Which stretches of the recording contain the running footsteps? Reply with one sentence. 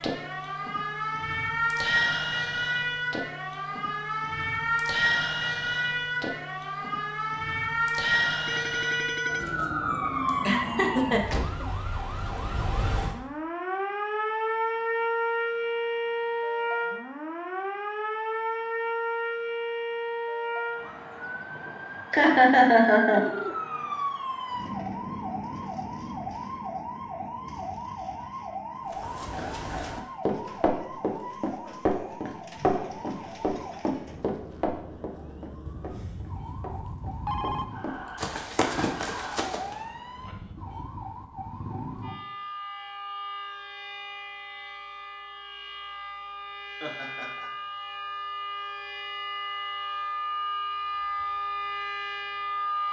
The running footsteps can be heard from 28.9 to 39.8 s.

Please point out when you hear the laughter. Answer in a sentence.
You can hear the laughter from 10.2 to 11.7 s, from 22.1 to 23.3 s and from 46.8 to 47.5 s.